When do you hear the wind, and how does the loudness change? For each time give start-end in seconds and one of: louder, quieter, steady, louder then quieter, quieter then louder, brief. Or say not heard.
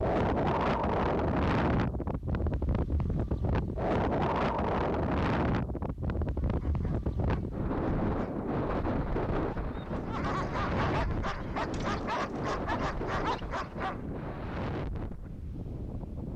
0.0-16.3 quieter.